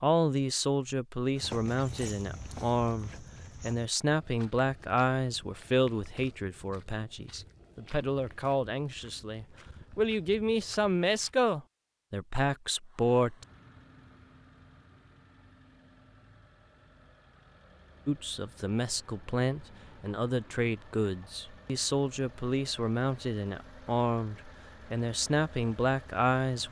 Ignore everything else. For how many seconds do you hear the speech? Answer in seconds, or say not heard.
22 s.